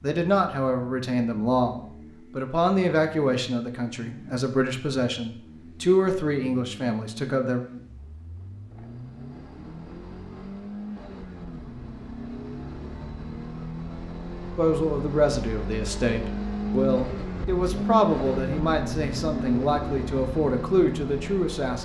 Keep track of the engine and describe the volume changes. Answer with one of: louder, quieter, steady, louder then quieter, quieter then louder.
louder.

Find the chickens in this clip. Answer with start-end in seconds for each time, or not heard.
not heard.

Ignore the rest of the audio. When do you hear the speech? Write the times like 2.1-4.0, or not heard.
0.0-7.6, 14.6-21.8.